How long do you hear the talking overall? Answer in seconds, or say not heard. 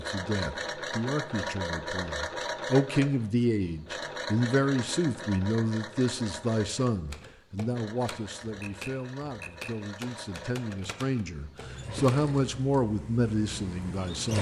14 s.